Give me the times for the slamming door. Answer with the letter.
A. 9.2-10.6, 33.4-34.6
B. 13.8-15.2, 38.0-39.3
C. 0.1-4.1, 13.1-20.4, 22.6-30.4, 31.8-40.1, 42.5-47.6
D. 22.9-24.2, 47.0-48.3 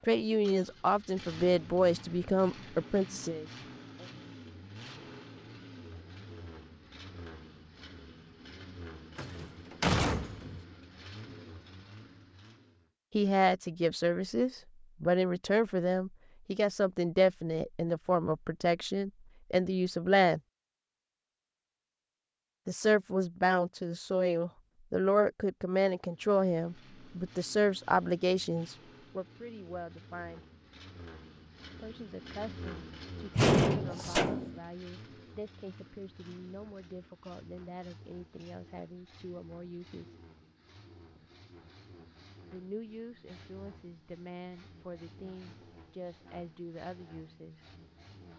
A.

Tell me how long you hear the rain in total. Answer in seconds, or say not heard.
not heard.